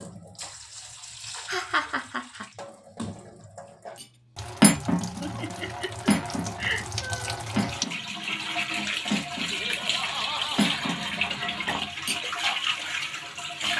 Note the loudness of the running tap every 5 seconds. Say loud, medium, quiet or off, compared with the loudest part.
quiet, loud, loud.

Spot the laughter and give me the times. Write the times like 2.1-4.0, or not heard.
1.4-2.5, 5.2-7.5, 9.5-11.8.